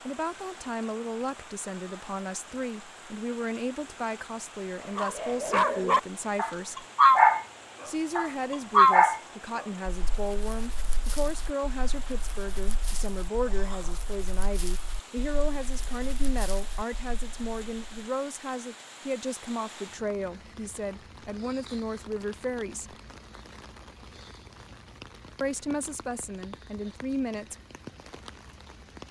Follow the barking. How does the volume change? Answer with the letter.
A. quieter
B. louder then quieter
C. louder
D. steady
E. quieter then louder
A.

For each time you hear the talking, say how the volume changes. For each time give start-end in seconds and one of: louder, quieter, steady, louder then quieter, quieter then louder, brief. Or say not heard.
0.1-6.8 steady
7.8-22.9 steady
25.4-27.6 brief.